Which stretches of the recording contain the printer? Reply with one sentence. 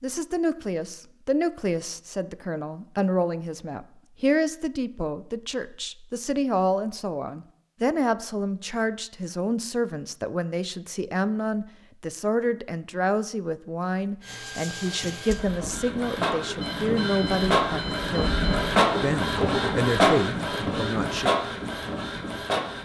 You can hear the printer from 14.2 to 22.8 s.